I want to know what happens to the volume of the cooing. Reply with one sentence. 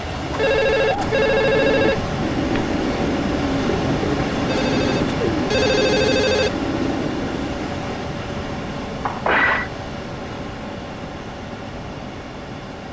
The loudness of the cooing stays about the same.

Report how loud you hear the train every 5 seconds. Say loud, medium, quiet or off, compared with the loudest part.
loud, loud, medium.